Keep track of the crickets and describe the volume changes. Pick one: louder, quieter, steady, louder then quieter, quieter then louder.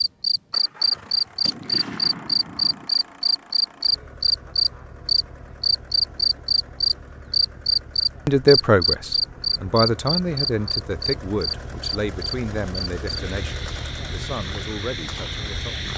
quieter.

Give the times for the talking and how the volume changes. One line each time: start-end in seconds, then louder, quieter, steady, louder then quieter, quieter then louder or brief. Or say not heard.
8.2-15.9 quieter.